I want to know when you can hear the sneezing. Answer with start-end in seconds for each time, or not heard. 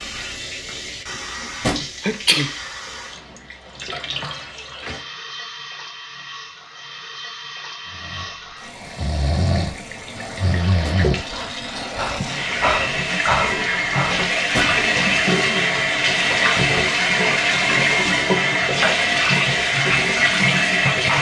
2.0-2.6.